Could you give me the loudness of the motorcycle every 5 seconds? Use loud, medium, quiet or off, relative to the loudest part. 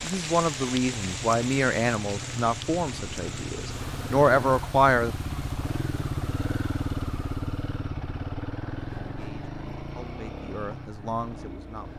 loud, loud, medium.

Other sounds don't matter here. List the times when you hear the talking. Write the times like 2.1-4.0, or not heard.
0.0-5.2, 9.1-11.9.